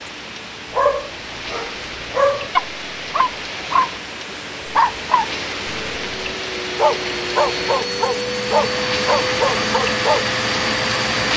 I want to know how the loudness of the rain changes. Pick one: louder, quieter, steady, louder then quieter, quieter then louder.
louder.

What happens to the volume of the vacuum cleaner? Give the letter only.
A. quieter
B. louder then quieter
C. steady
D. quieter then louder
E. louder
E.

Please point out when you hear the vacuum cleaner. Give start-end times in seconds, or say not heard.
0.0-11.3.